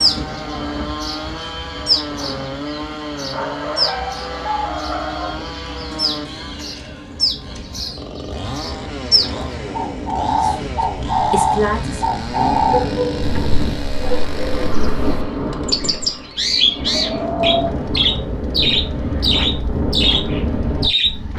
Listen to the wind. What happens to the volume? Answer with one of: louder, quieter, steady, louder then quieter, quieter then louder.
louder.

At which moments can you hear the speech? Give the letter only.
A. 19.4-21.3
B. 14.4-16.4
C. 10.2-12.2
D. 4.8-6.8
C.